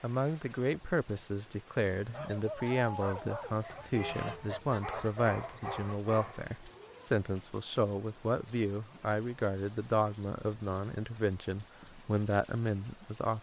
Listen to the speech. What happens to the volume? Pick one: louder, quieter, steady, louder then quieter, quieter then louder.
steady.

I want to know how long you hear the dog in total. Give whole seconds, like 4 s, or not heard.
5 s.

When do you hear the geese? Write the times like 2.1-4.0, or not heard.
3.6-6.0.